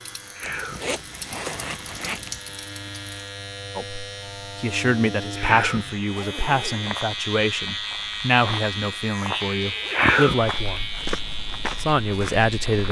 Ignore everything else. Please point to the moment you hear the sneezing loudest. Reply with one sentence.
The volume of the sneezing peaks at 10 seconds.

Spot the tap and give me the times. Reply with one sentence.
You can hear the tap from 0.0 to 3.4 s.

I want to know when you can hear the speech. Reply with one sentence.
You can hear the speech from 3.8 to 10.9 s and from 11.8 to 12.8 s.